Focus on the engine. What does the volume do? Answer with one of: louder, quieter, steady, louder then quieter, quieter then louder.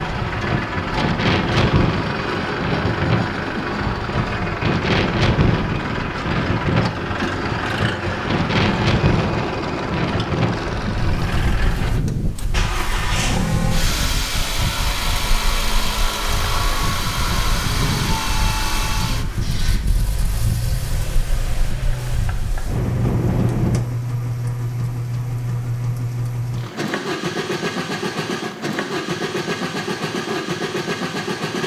steady.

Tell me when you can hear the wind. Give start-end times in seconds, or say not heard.
0.0-23.8.